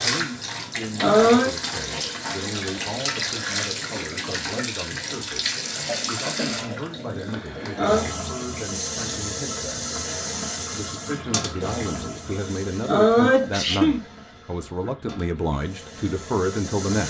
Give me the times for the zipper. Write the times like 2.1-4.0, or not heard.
not heard.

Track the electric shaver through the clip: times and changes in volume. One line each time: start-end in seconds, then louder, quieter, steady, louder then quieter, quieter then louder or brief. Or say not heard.
not heard.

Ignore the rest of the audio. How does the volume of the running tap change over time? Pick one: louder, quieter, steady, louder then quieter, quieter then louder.
quieter.